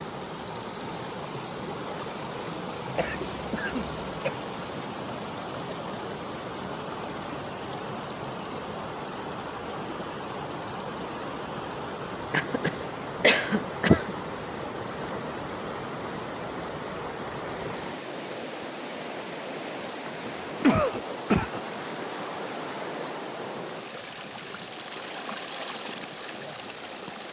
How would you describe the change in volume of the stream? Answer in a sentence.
The volume of the stream stays about the same.